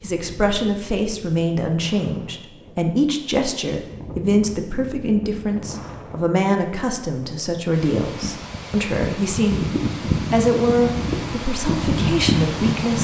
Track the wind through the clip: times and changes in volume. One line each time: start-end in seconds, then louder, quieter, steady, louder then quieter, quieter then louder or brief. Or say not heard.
0.0-12.9 louder.